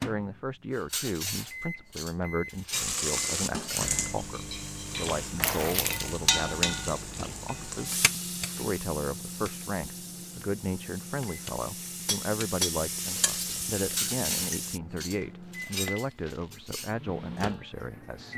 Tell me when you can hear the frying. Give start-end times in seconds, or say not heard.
2.7-14.8.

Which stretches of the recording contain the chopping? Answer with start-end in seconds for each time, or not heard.
not heard.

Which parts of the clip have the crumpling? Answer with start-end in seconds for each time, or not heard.
5.4-6.2, 15.2-16.6.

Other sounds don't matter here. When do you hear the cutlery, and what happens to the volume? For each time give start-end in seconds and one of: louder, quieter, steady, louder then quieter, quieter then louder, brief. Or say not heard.
0.8-5.8 quieter then louder
12.1-16.9 quieter then louder.